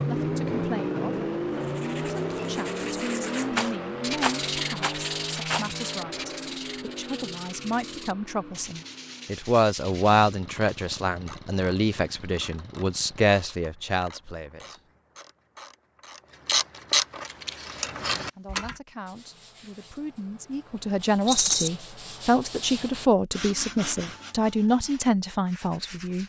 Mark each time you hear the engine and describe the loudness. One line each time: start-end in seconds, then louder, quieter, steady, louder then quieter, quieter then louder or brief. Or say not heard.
0.0-13.3 quieter.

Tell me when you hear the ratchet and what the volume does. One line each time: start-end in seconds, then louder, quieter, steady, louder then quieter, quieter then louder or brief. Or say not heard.
10.4-18.8 louder.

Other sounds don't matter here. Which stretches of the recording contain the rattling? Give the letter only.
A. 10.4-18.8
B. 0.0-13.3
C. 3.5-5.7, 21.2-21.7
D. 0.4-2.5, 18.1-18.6
C.